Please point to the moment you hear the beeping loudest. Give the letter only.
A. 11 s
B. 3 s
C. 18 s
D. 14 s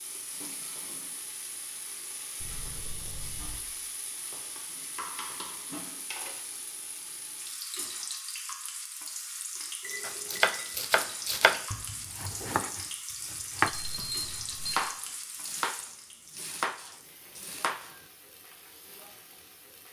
D.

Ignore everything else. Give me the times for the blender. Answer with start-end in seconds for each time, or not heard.
not heard.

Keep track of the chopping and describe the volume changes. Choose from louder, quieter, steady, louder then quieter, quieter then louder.
quieter.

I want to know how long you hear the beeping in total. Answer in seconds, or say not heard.
3 s.